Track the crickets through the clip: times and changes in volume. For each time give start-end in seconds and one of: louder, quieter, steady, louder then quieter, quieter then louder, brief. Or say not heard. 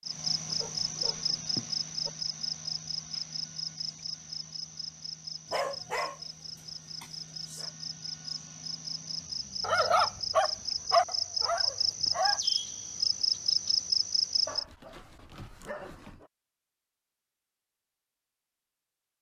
0.0-14.7 quieter then louder.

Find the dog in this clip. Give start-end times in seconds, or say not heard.
0.5-2.1, 5.5-7.7, 9.6-12.4, 14.4-16.3.